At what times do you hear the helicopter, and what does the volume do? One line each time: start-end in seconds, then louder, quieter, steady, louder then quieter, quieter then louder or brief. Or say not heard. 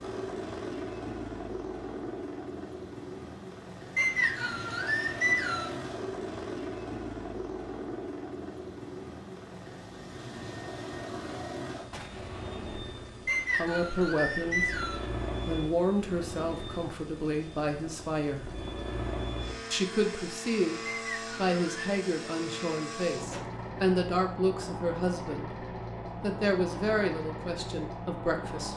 0.0-28.7 steady.